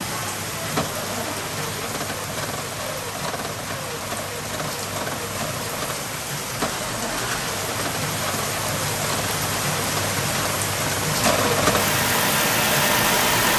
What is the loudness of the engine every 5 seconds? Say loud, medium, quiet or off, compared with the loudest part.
medium, medium, loud.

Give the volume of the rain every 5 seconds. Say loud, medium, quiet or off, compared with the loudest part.
medium, loud, loud.